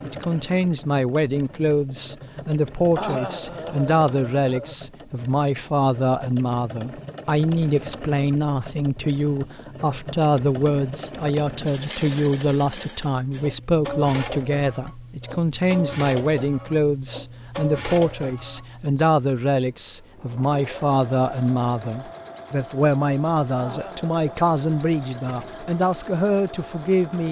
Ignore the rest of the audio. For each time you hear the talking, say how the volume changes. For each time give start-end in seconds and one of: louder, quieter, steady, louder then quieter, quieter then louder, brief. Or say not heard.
0.0-27.2 steady.